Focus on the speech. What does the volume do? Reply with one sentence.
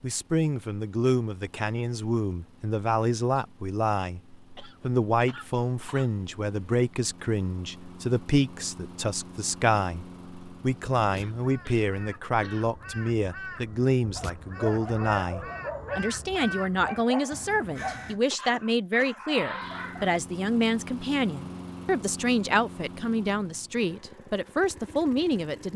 The volume of the speech stays about the same.